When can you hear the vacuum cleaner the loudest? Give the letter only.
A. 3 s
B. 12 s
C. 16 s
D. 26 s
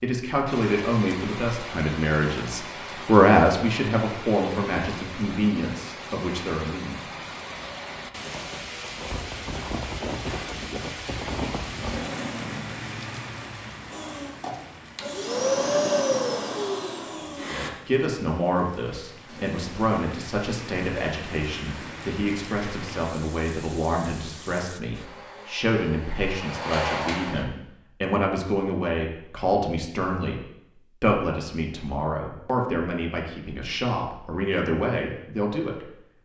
C.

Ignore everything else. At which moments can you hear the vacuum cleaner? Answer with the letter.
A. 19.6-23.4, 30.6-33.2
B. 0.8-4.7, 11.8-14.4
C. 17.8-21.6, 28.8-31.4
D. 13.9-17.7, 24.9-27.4
D.